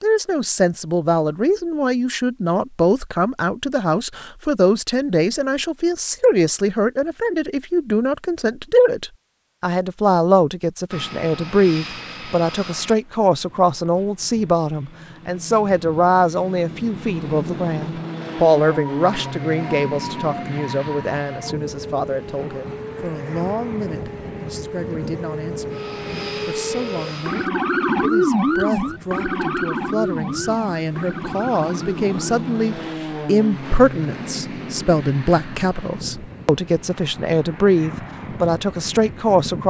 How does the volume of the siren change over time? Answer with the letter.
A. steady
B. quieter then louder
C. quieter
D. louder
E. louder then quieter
E.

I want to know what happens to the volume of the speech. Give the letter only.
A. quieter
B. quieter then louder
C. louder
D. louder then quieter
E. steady
B.